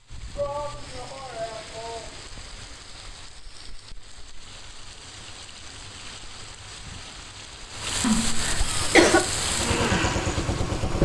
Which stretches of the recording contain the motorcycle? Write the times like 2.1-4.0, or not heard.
8.8-11.0.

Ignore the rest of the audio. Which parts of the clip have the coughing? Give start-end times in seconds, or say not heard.
8.0-9.3.